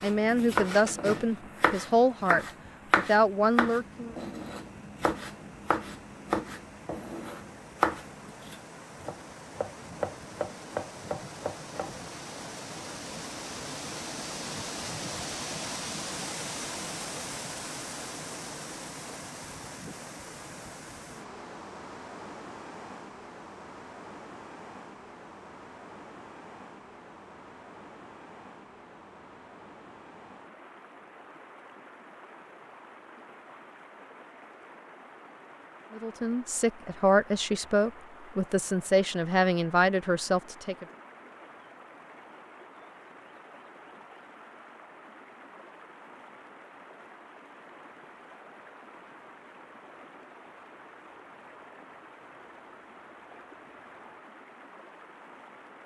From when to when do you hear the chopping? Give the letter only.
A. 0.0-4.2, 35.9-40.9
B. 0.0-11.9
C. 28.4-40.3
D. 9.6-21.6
B.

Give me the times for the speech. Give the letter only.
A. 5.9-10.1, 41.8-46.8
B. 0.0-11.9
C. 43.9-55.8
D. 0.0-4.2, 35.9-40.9
D.